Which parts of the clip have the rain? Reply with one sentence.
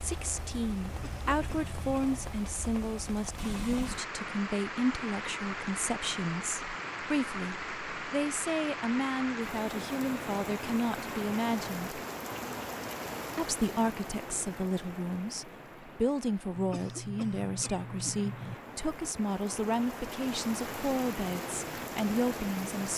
The rain can be heard from 0.0 to 22.9 s.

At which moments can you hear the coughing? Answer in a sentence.
The coughing can be heard from 0.8 to 2.4 s and from 16.6 to 18.6 s.